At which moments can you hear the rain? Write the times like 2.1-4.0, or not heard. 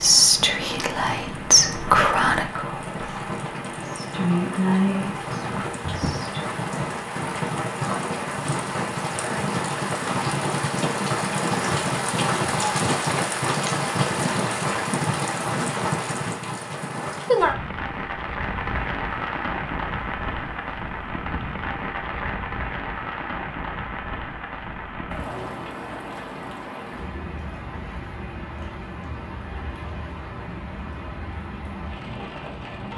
0.0-32.9.